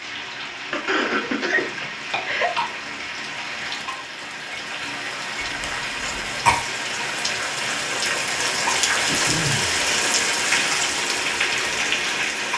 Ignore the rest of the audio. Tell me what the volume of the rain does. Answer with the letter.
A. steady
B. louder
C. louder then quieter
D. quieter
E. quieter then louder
B.